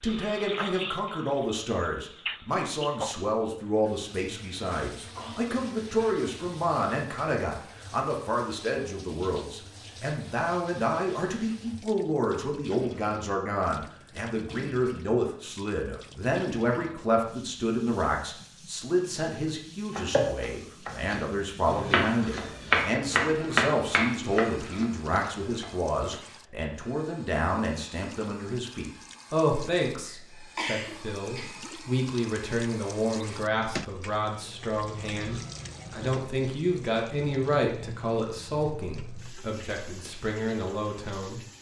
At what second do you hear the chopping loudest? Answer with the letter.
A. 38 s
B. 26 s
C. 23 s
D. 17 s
C.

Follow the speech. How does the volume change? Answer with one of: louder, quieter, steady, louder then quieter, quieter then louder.
steady.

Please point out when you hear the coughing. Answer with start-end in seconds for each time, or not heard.
30.1-31.5.